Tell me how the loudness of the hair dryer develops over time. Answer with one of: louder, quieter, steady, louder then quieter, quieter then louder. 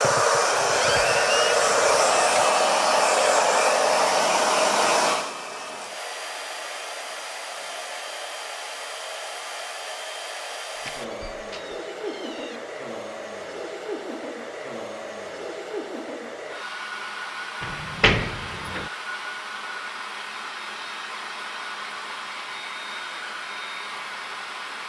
quieter.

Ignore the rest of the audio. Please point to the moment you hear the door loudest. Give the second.
18 s.